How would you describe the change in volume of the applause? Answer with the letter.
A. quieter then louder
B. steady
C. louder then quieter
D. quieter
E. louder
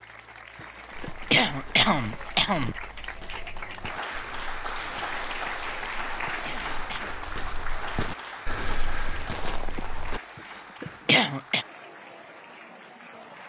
C.